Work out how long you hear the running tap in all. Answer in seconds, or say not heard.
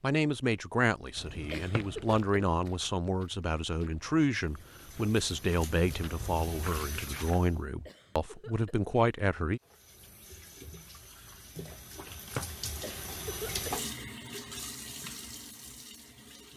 10 s.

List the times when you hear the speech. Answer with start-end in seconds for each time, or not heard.
0.0-9.6.